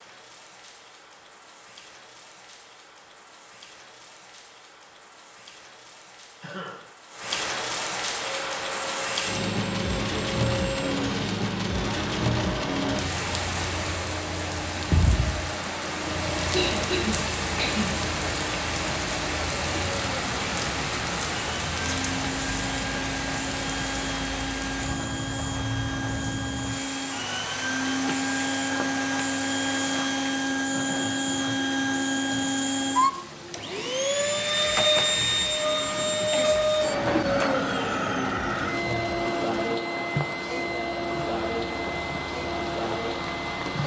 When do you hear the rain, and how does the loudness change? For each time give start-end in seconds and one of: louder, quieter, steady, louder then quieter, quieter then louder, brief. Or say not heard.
0.0-43.8 louder then quieter.